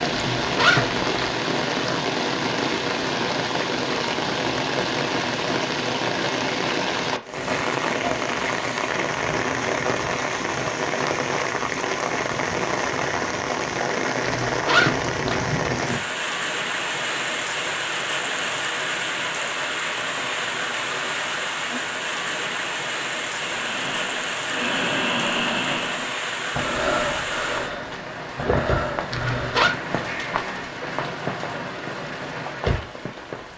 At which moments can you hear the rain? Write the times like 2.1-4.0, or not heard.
0.0-33.5.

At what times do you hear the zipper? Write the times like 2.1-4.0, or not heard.
0.1-1.4, 14.2-15.4, 29.1-29.8.